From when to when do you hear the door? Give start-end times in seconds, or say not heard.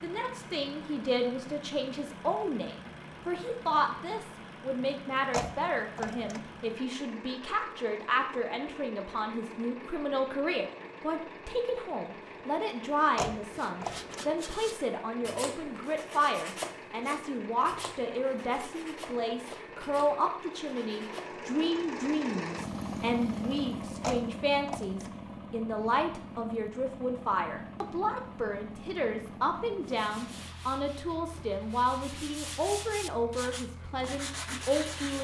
5.3-6.4, 13.2-14.2, 24.0-25.1.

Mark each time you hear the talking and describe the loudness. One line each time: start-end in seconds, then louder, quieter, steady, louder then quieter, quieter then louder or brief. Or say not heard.
0.0-35.1 steady.